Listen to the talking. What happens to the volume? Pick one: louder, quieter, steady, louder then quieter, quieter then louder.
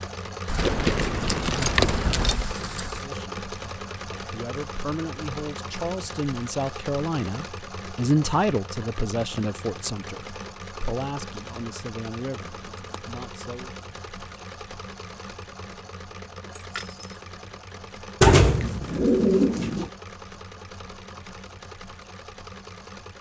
louder then quieter.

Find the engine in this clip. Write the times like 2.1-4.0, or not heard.
0.0-23.1.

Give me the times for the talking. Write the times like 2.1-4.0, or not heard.
2.9-13.8.